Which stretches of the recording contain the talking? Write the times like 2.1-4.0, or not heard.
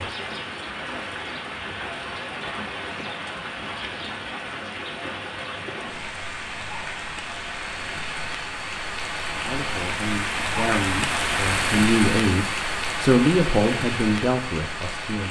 9.3-15.2.